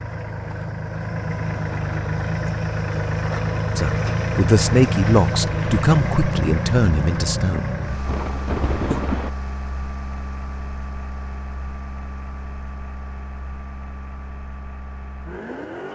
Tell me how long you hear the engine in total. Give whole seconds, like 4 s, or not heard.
16 s.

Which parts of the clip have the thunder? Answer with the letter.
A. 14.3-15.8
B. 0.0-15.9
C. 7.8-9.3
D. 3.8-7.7
C.